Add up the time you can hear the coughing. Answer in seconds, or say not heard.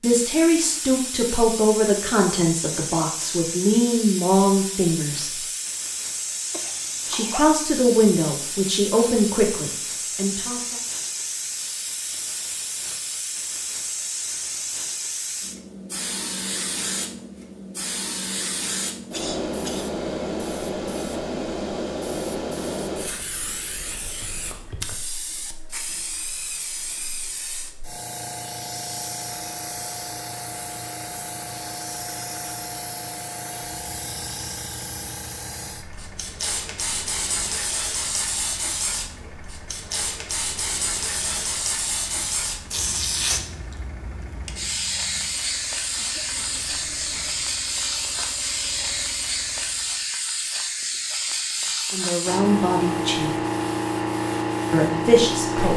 3 s.